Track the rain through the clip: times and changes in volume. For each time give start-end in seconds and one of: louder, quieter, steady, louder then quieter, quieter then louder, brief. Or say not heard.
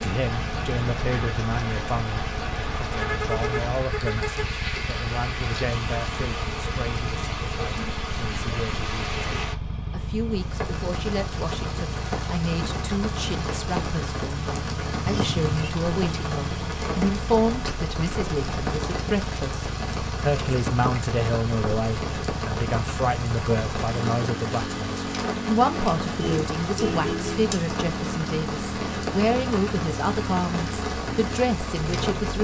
0.0-32.3 steady.